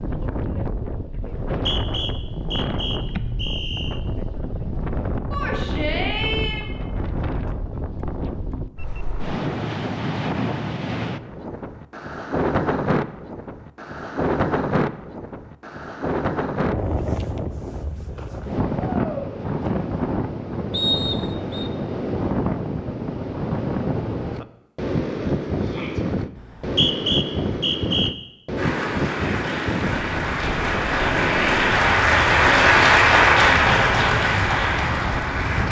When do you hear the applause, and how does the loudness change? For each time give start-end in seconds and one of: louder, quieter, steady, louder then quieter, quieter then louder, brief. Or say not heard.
28.6-35.6 louder then quieter.